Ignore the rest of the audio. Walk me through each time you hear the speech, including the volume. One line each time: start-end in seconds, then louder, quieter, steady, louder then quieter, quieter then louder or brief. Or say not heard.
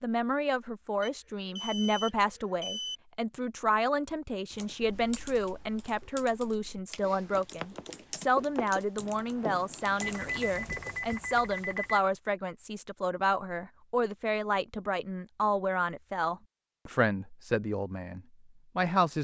0.0-19.1 steady.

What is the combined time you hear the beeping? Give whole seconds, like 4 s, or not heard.
4 s.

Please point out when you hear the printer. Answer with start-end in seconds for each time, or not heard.
not heard.